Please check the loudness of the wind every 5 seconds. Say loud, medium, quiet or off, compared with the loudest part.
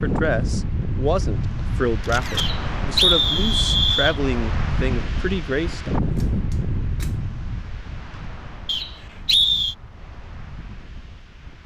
loud, loud, quiet.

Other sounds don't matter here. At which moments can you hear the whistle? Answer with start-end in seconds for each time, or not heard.
2.4-4.2, 8.7-9.8.